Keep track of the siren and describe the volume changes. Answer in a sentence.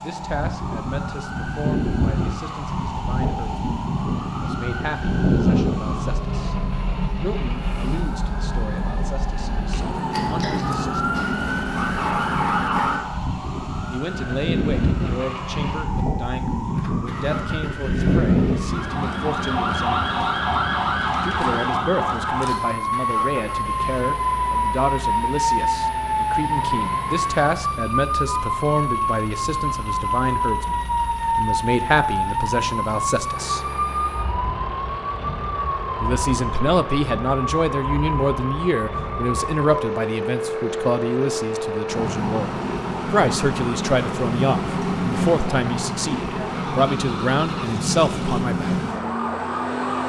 The volume of the siren stays about the same.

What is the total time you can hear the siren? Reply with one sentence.
The siren can be heard for 50 seconds in total.